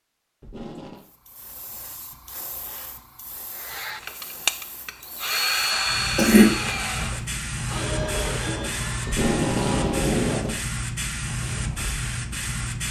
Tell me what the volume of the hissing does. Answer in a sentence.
The volume of the hissing goes up.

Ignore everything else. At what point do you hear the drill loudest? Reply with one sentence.
The loudest moment of the drill is at 6 seconds.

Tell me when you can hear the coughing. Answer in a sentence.
You can hear the coughing from 5.7 to 7.2 s.